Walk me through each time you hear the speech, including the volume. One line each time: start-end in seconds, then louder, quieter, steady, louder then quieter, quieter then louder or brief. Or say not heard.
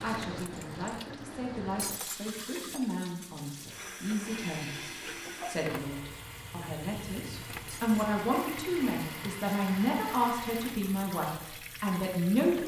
0.0-12.6 louder.